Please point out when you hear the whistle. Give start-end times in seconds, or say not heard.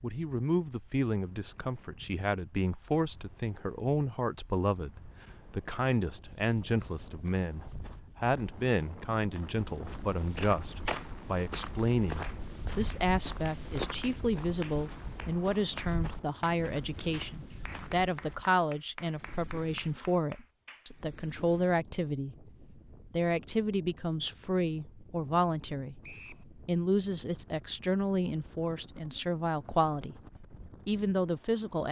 26.0-26.4.